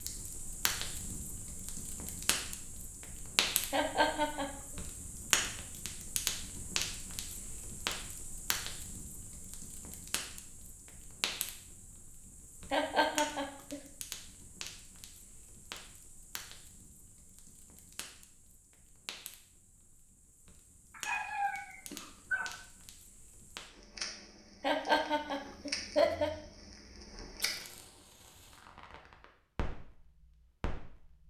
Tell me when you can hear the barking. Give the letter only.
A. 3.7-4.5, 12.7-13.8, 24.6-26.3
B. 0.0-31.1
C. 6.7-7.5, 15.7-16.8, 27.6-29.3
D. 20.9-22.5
D.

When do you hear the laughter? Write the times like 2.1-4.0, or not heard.
3.7-4.5, 12.7-13.8, 24.6-26.3.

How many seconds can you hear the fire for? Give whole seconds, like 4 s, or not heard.
31 s.